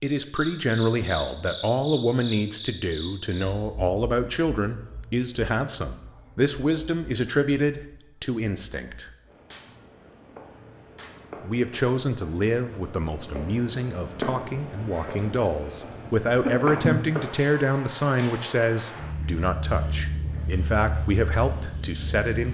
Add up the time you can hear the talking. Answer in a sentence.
You can hear the talking for 20 seconds altogether.